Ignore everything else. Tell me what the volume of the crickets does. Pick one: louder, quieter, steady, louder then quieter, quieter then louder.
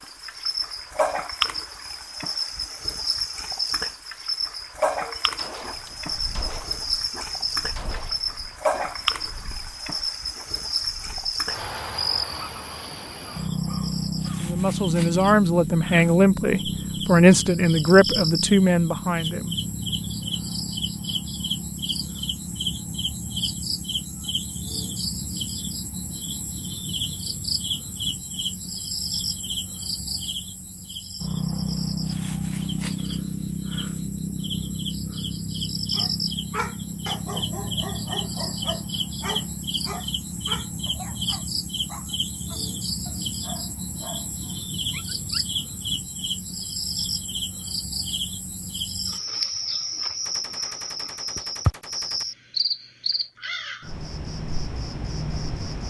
steady.